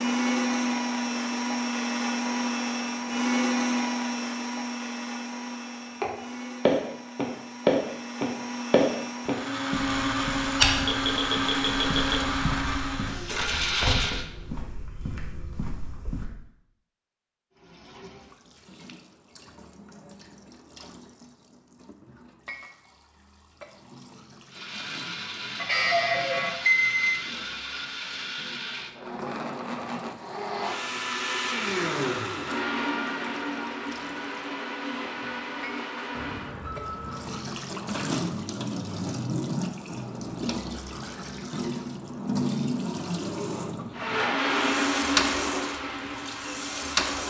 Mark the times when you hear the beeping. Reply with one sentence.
The beeping can be heard from 10.8 to 12.2 s, from 25.6 to 27.1 s and from 36.1 to 37.4 s.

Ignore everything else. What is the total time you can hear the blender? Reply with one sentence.
You can hear the blender for 30 seconds altogether.